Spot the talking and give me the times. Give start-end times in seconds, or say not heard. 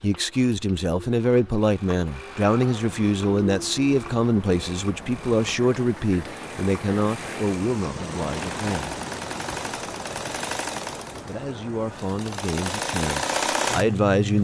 0.0-9.0, 11.2-14.3.